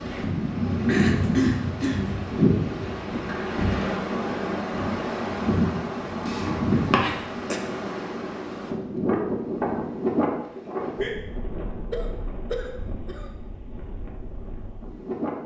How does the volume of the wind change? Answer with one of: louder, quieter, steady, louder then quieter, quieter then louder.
quieter.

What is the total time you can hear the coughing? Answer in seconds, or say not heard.
4 s.